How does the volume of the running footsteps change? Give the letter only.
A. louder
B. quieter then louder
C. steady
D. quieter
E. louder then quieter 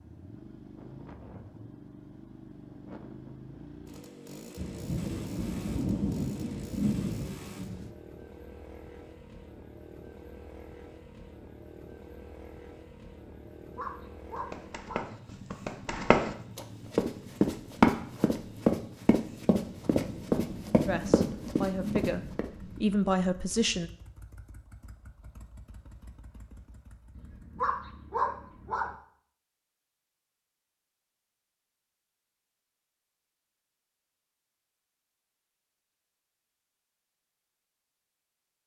E.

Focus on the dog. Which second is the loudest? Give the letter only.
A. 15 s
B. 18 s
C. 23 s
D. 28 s
D.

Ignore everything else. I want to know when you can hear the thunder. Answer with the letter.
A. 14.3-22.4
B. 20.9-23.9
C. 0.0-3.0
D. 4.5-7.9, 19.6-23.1
D.